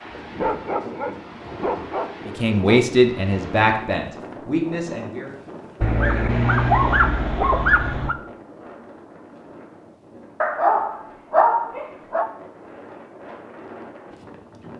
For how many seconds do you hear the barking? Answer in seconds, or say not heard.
7 s.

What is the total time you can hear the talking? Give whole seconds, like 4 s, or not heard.
3 s.